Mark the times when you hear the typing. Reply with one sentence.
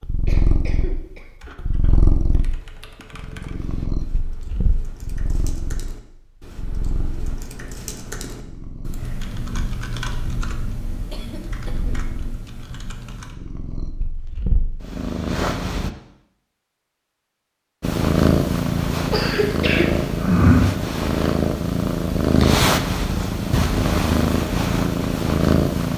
The typing can be heard from 1.4 to 13.3 s.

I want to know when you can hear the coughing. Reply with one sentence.
The coughing can be heard from 0.2 to 1.4 s, from 11.1 to 12.1 s and from 19.1 to 20.1 s.